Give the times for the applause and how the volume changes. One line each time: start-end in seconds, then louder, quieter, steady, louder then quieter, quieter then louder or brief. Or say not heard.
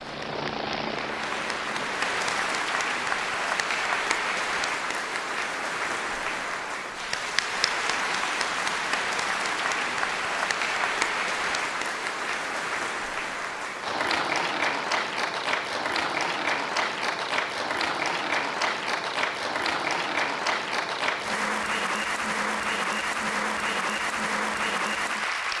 0.0-25.5 steady.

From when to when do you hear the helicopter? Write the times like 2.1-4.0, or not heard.
0.0-2.6.